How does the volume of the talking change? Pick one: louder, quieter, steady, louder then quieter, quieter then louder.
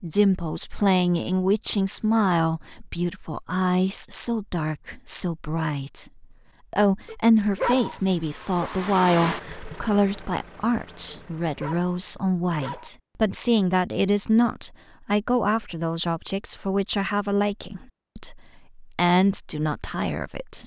steady.